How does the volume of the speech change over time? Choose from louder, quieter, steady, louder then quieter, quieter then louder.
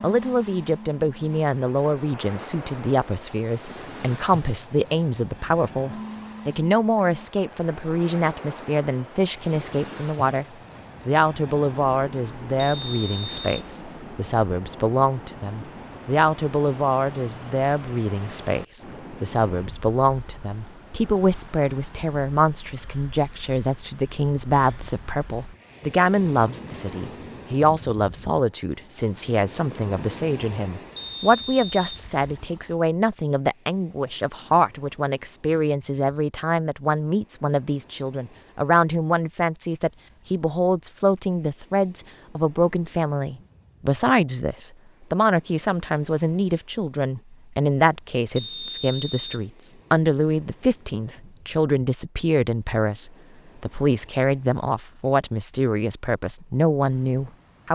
steady.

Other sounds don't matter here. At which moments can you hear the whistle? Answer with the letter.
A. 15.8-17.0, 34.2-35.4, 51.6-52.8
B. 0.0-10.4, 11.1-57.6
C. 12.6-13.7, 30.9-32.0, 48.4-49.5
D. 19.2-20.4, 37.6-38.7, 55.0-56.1
C.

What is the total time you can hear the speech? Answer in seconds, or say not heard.
57 s.